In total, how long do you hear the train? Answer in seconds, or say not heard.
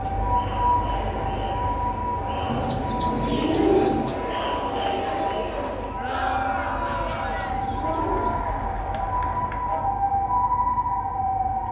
not heard.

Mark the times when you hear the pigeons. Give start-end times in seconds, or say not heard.
2.5-4.2, 6.8-8.4.